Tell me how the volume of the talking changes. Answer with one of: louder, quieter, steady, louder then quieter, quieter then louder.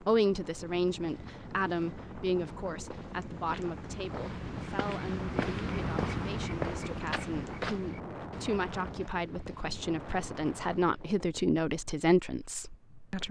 quieter then louder.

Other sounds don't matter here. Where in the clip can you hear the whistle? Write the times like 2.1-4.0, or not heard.
not heard.